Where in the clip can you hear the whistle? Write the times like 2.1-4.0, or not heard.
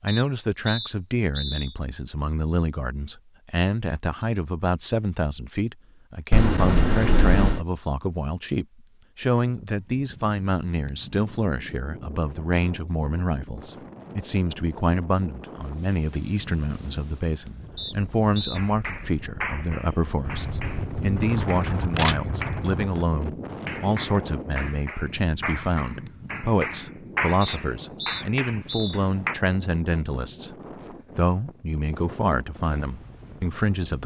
0.1-1.8, 17.8-18.6, 27.4-29.0.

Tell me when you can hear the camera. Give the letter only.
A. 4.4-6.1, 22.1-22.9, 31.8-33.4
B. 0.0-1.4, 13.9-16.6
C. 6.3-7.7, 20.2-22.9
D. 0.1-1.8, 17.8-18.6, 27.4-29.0
C.